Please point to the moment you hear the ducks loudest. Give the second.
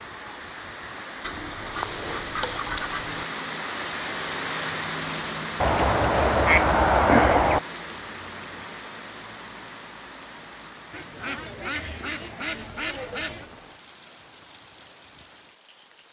7 s.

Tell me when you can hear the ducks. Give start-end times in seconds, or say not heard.
1.2-3.2, 5.6-7.6, 10.9-13.5.